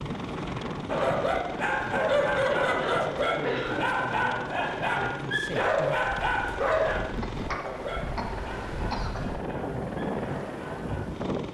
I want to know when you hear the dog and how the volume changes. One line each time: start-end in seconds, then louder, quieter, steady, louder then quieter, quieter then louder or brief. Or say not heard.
0.8-11.1 quieter.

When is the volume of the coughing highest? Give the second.
4 s.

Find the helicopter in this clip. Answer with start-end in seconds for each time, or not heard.
0.0-11.5.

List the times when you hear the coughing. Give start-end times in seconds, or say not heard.
2.5-4.0, 7.2-9.2.